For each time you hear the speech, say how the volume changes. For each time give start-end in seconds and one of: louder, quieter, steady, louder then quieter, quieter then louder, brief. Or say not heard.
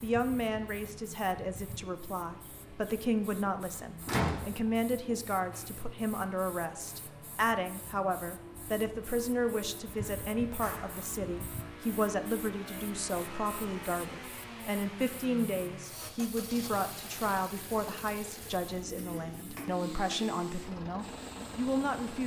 0.0-22.2 steady.